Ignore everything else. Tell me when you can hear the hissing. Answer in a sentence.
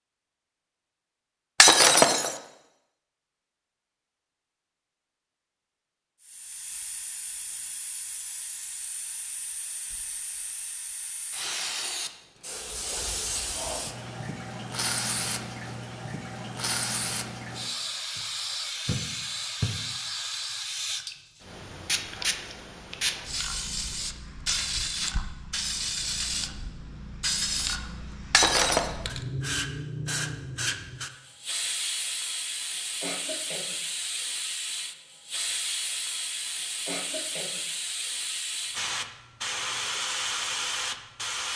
The hissing can be heard from 6.2 to 41.5 s.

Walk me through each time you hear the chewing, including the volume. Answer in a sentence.
The chewing can't be heard in this clip.